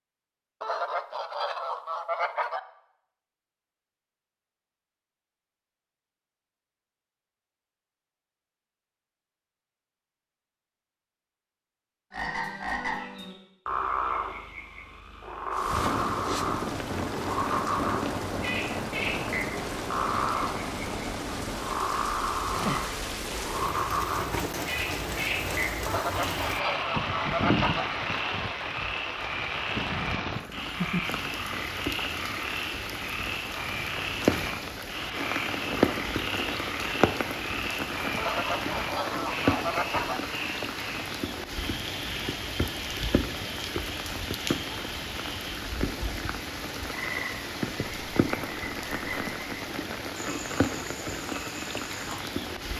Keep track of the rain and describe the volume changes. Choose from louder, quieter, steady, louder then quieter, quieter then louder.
steady.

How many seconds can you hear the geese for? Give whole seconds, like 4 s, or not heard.
6 s.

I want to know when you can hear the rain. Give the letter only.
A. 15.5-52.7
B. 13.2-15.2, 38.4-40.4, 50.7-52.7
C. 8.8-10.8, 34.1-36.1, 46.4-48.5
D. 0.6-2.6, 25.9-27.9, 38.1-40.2
A.